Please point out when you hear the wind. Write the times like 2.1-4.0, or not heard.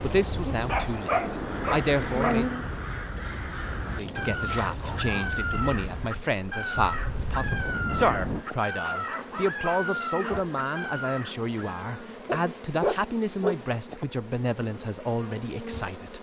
0.0-8.4.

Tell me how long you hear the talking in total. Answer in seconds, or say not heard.
15 s.